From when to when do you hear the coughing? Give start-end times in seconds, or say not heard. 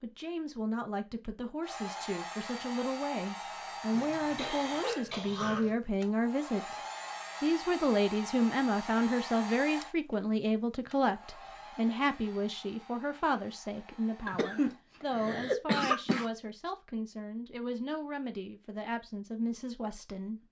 3.9-5.8, 14.2-16.2.